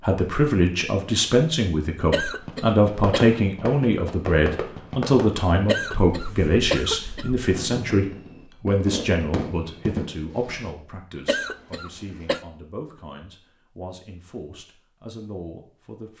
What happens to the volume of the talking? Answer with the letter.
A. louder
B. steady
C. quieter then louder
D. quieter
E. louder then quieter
D.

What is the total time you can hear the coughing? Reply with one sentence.
The coughing can be heard for 4 seconds in total.